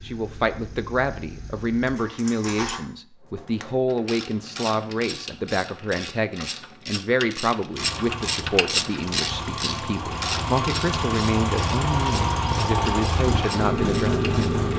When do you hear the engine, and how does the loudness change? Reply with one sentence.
The engine can be heard briefly from 0.0 to 2.8 s; and from 7.7 to 14.7 s, getting louder.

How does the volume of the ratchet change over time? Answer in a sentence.
The volume of the ratchet goes up, then down.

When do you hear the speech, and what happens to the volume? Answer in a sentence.
The speech can be heard from 0.0 to 14.6 s, at a steady volume.